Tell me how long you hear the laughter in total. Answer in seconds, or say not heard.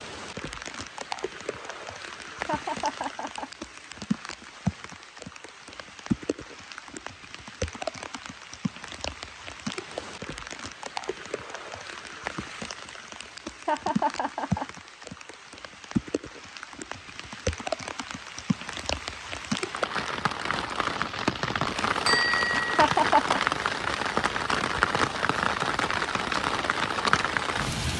3 s.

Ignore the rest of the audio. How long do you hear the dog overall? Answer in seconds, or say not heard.
not heard.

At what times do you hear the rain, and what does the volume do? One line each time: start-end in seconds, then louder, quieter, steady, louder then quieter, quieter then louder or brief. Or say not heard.
0.0-27.9 louder.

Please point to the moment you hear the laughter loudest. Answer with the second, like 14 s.
23 s.